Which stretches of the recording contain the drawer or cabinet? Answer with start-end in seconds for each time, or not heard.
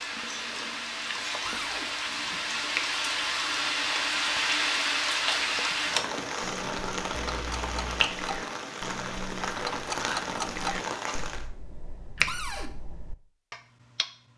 1.4-1.9, 12.2-12.7.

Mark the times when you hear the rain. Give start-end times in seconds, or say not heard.
0.0-11.4.